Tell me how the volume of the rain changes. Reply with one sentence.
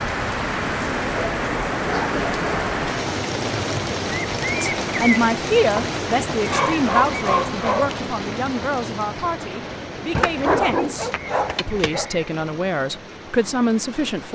The volume of the rain goes down.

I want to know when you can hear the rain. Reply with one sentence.
You can hear the rain from 0.0 to 14.2 s.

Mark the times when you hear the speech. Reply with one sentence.
You can hear the speech from 4.6 to 14.2 s.